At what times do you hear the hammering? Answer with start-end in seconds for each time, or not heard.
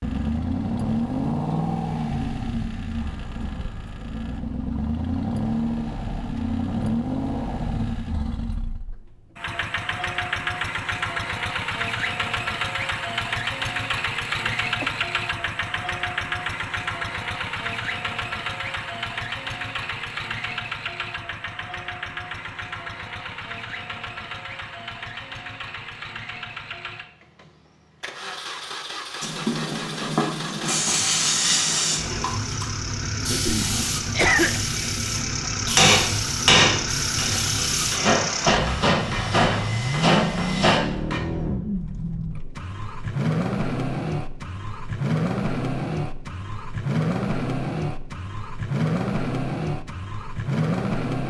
35.8-41.2.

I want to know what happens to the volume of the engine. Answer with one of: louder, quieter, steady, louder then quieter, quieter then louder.
quieter then louder.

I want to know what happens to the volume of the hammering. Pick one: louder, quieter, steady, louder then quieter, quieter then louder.
quieter.